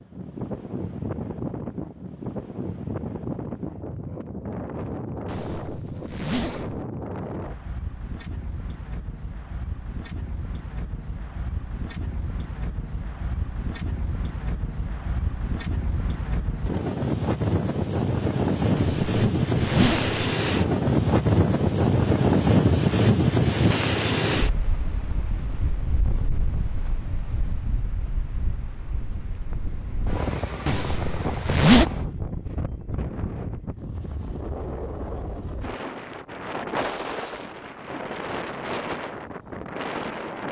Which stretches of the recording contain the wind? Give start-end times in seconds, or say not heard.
0.0-40.4.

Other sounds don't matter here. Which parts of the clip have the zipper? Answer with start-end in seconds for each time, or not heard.
5.2-6.8, 18.8-20.2, 30.6-31.9.